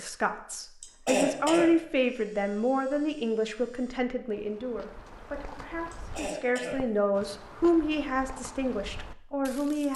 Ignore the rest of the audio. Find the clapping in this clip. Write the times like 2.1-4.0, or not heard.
not heard.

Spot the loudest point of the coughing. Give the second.
1 s.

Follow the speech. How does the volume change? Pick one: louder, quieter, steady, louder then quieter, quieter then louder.
quieter then louder.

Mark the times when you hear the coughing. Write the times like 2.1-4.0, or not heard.
0.8-1.7, 5.9-6.8.